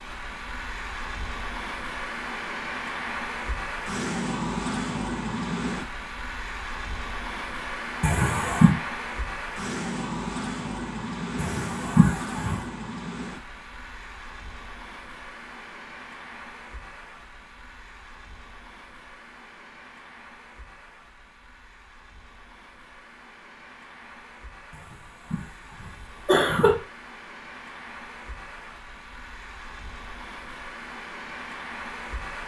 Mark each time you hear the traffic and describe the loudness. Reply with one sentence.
The traffic can be heard from 0.0 to 32.4 s, getting quieter then louder.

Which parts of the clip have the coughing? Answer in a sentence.
The coughing can be heard from 8.0 to 8.8 s, from 11.3 to 12.7 s and from 25.3 to 26.8 s.